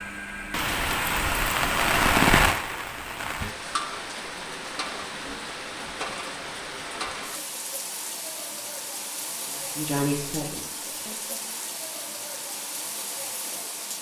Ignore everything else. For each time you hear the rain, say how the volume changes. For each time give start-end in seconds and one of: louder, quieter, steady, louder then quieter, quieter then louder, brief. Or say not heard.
0.0-13.9 quieter.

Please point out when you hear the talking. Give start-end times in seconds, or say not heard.
9.4-11.5.